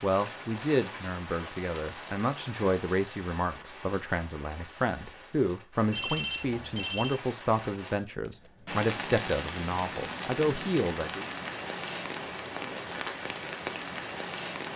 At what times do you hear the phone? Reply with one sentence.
The phone can be heard from 5.9 to 7.2 s.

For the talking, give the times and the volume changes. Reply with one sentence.
The talking can be heard from 0.0 to 11.2 s, at a steady volume.